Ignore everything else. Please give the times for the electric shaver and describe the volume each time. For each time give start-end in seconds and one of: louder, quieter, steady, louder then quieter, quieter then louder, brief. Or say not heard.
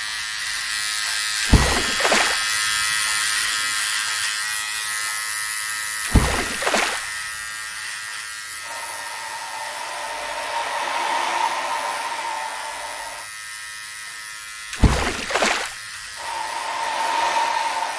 0.0-17.9 quieter.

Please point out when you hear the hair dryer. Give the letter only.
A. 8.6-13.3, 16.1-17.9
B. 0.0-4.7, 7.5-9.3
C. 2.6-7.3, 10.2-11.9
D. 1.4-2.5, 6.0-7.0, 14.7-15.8
A.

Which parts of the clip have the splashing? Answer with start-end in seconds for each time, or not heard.
1.4-2.5, 6.0-7.0, 14.7-15.8.